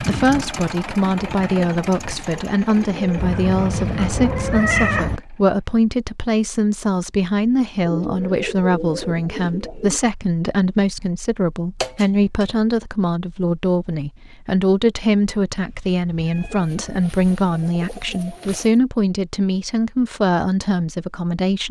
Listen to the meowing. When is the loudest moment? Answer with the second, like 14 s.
5 s.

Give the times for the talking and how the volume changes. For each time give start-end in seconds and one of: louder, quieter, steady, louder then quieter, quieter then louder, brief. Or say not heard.
0.0-21.6 steady.